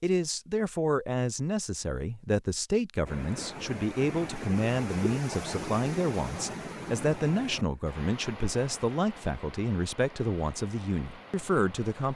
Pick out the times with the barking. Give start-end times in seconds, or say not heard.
not heard.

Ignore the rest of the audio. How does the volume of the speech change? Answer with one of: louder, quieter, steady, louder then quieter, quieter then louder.
steady.